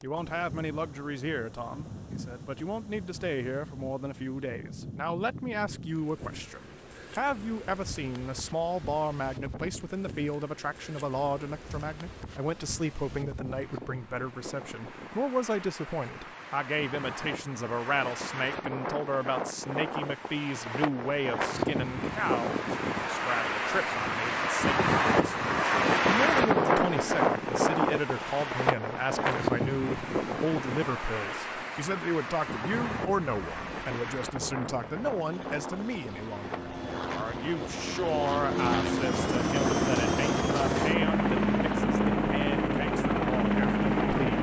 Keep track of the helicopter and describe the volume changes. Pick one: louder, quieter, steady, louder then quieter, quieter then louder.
louder.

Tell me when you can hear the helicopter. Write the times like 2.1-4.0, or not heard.
32.7-44.3.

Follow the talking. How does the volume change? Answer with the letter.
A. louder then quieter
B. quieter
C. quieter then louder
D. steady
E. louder
D.